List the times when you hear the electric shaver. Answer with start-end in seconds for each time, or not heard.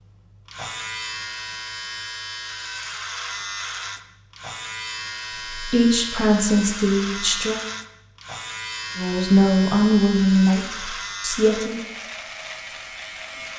0.0-13.5.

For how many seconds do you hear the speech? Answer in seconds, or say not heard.
5 s.